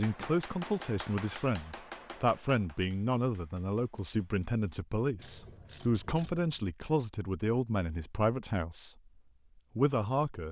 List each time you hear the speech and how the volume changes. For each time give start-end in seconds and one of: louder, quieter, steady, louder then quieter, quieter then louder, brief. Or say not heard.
0.0-8.9 steady
9.8-10.4 brief.